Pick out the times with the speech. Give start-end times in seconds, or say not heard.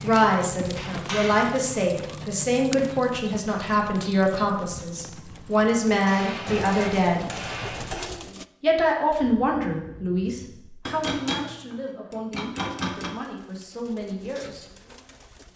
0.0-7.3, 8.6-14.7.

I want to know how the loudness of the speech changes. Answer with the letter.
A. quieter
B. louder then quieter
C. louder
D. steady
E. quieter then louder
A.